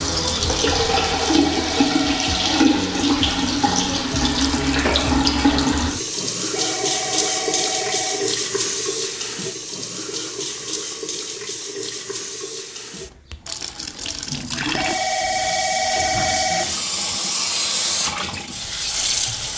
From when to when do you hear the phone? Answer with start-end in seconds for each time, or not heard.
0.9-2.6, 6.5-8.3, 14.8-16.8.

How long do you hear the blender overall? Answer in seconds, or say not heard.
not heard.